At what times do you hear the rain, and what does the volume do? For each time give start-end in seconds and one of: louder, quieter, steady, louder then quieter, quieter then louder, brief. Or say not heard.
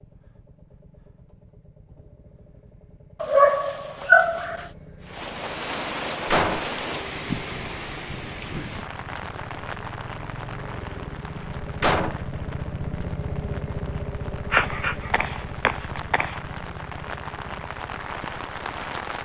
5.0-19.2 quieter then louder.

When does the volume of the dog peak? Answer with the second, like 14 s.
4 s.